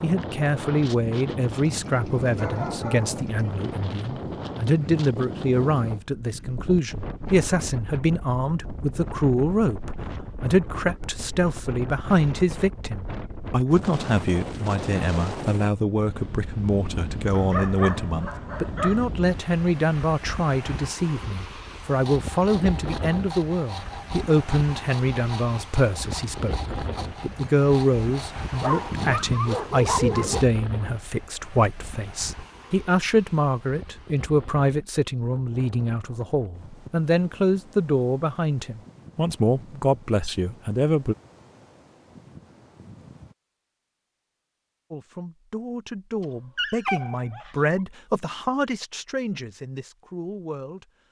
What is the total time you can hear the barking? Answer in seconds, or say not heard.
7 s.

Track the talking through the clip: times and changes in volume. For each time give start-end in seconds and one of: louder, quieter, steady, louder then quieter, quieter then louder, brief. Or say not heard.
0.0-26.6 steady
27.2-41.1 steady
44.9-50.9 louder then quieter.